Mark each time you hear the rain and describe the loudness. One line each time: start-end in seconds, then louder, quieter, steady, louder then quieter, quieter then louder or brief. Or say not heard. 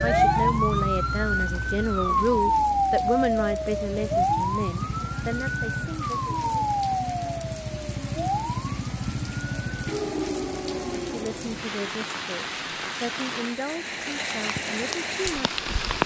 0.0-16.0 louder.